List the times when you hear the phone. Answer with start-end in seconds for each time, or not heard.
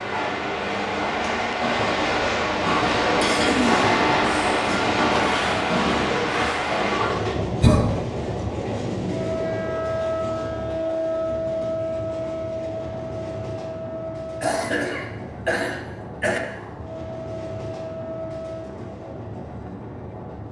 not heard.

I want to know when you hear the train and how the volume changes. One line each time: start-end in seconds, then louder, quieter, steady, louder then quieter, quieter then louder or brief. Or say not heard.
0.0-20.4 quieter.